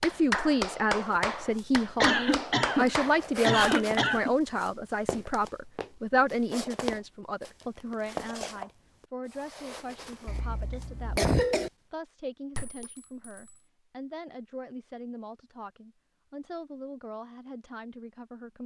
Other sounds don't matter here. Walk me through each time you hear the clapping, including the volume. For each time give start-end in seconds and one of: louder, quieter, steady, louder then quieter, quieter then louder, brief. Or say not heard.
0.0-4.0 steady.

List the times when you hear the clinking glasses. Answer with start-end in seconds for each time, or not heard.
12.6-13.6.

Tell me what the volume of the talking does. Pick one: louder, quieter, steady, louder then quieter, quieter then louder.
quieter.